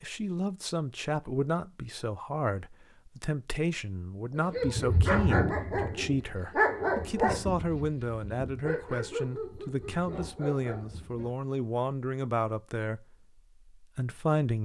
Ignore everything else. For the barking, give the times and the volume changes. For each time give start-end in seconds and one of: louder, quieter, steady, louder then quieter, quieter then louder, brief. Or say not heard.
4.3-11.3 quieter.